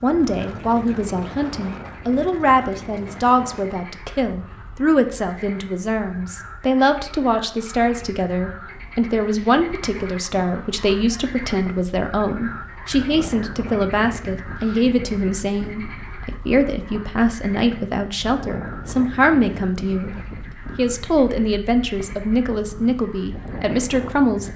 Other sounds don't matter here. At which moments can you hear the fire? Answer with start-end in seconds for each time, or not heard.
not heard.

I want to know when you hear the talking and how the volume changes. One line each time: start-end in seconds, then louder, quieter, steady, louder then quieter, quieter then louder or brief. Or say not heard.
0.0-24.5 steady.